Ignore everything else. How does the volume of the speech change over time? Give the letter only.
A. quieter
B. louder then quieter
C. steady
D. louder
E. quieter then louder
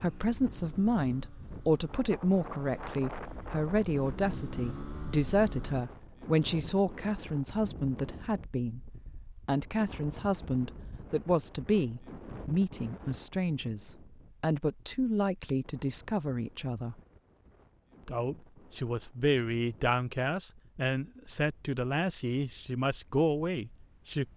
C.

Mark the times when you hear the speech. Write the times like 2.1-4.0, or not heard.
0.0-8.8, 9.4-16.9, 18.1-24.2.